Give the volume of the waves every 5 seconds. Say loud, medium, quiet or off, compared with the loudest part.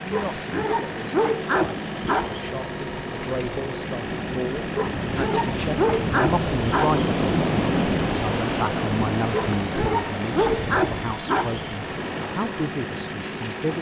medium, loud, medium.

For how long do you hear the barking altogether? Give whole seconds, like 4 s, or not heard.
7 s.